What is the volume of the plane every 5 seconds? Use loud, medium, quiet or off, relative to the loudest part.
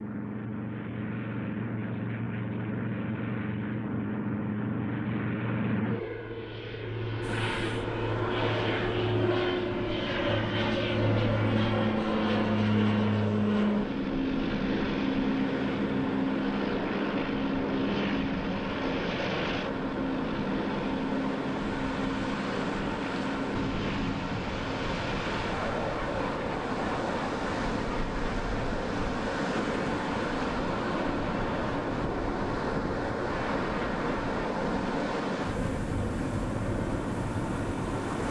medium, loud, loud, loud, medium, medium, medium, medium.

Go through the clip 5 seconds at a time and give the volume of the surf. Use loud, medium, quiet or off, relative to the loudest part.
off, medium, medium, medium, loud, loud, loud, loud.